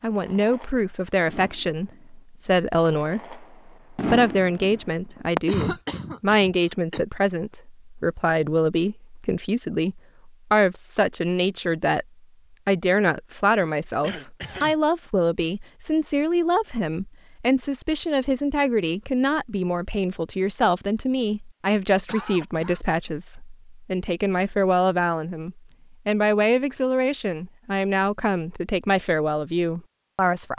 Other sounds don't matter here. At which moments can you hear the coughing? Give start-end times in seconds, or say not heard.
5.5-7.0, 14.0-14.8, 22.1-22.8.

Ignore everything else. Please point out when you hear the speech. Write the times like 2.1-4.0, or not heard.
0.0-12.1, 12.7-30.5.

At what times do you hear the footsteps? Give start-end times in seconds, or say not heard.
not heard.